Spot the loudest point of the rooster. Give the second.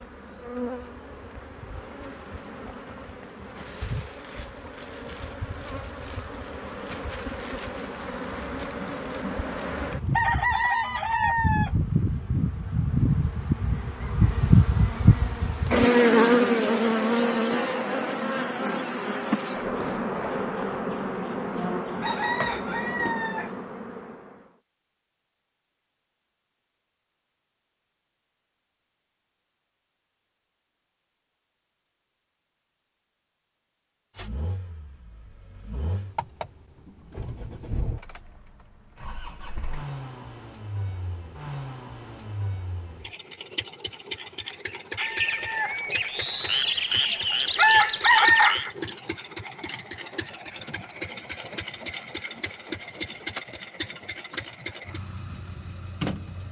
48 s.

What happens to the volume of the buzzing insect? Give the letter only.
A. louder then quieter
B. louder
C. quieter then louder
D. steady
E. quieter
A.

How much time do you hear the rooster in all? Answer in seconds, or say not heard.
7 s.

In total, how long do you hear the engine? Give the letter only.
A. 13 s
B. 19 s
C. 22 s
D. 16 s
C.